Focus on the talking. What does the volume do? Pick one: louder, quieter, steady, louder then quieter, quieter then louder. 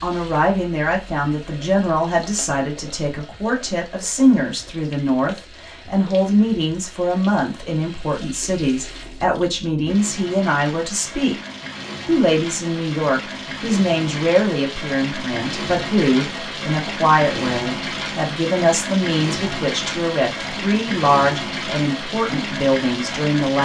steady.